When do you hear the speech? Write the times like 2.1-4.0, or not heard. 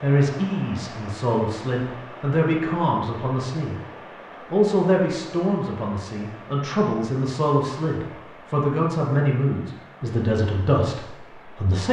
0.0-3.8, 4.5-11.8.